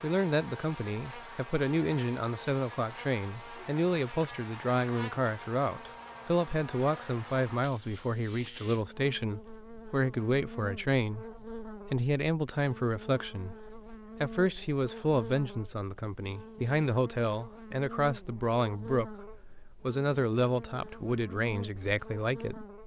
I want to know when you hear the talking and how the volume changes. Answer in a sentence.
You can hear the talking from 0.0 to 22.6 s, at a steady volume.